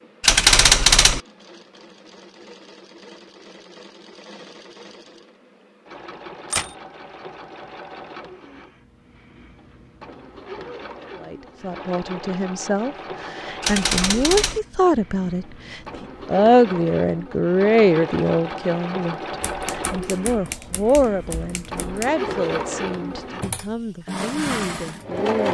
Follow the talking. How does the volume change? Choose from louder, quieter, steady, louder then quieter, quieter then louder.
louder then quieter.